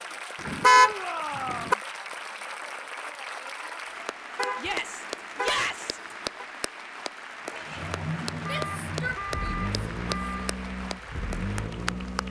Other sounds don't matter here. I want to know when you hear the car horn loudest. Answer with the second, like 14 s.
1 s.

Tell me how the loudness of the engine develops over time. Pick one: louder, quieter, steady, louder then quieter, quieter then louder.
steady.